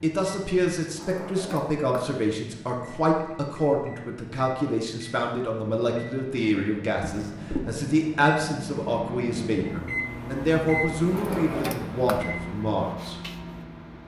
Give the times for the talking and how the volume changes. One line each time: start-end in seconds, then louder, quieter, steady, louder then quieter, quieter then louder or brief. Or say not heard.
0.0-13.2 steady.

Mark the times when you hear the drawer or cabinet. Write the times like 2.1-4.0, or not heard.
0.8-2.1, 7.0-7.8, 11.0-12.2.